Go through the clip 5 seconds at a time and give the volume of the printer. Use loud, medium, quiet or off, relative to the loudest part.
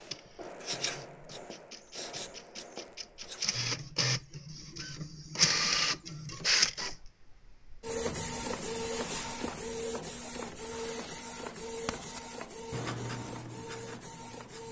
medium, loud, medium.